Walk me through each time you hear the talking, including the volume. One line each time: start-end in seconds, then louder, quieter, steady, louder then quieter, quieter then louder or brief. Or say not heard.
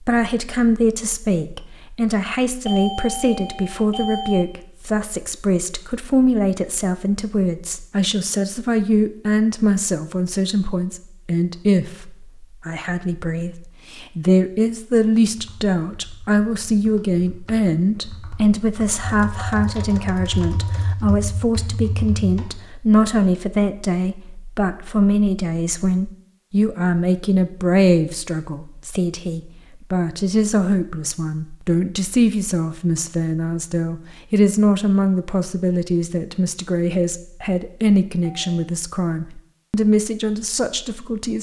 0.1-41.3 steady.